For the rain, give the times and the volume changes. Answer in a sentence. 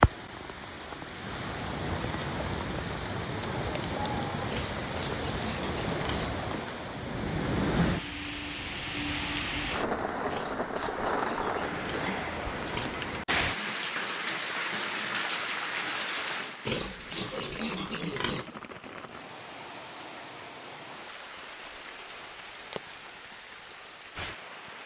You can hear the rain from 0.0 to 24.8 s, getting quieter.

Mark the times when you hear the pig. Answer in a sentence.
You can hear the pig from 4.5 to 6.5 s, from 10.3 to 13.1 s and from 16.6 to 18.5 s.